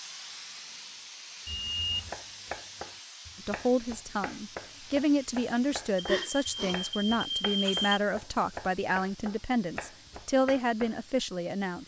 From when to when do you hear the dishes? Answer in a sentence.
The dishes can't be heard in this clip.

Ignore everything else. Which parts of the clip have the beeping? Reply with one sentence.
The beeping can be heard from 1.4 to 2.1 s and from 6.0 to 8.0 s.